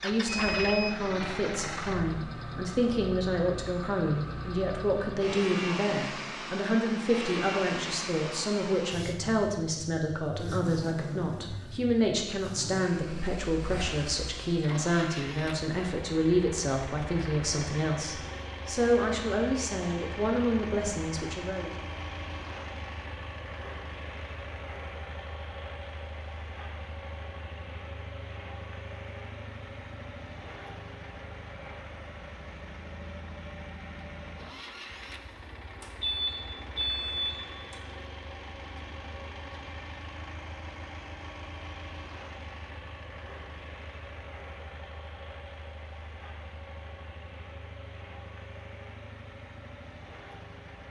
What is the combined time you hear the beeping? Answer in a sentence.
You can hear the beeping for 3 seconds altogether.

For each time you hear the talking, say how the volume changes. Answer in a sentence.
The talking can be heard from 0.0 to 21.7 s, at a steady volume.